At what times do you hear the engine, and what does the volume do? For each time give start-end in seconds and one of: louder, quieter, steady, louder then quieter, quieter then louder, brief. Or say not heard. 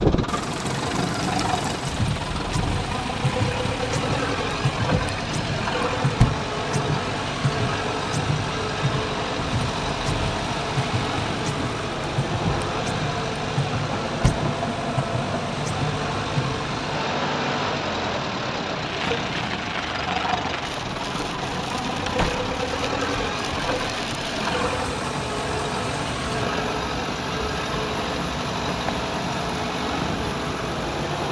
0.0-31.2 steady.